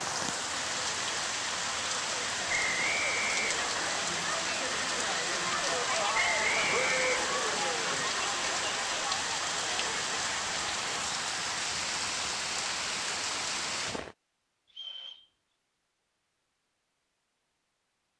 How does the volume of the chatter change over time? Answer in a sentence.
The loudness of the chatter goes up, then down.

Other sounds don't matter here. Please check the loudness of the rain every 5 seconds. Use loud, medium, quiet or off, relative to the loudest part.
loud, loud, loud, off.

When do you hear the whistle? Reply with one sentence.
The whistle can be heard from 2.5 to 4.0 s, from 6.1 to 7.6 s and from 14.7 to 15.2 s.